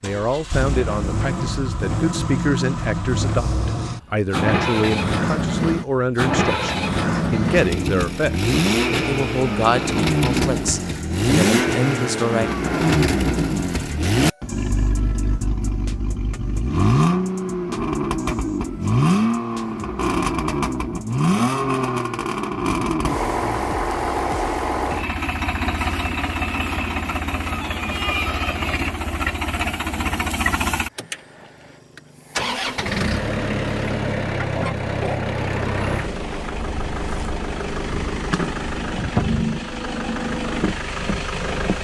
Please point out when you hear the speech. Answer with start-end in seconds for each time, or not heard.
0.0-12.5.